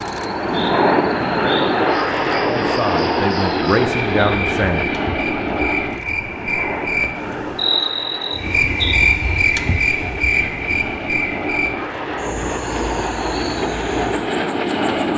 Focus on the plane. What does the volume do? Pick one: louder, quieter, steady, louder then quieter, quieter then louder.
quieter then louder.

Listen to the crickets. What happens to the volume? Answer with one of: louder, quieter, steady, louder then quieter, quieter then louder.
louder then quieter.